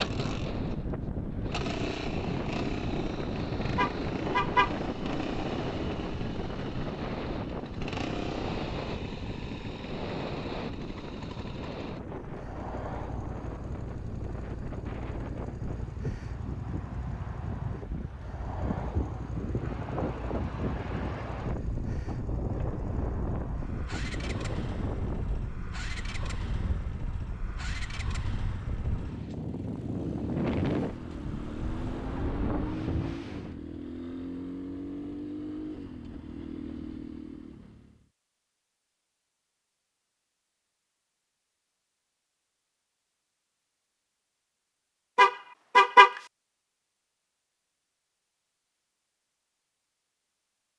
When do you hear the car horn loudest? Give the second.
46 s.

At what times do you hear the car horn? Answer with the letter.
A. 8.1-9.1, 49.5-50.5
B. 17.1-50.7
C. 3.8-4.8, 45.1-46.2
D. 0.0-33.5
C.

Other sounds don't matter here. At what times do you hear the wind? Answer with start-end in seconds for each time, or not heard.
0.0-33.5.